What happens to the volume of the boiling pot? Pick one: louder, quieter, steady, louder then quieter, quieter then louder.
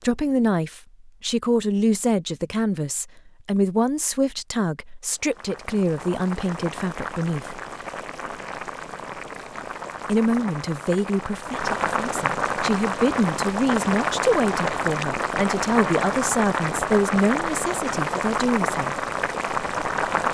louder.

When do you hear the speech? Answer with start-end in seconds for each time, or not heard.
0.0-7.5, 10.1-19.0.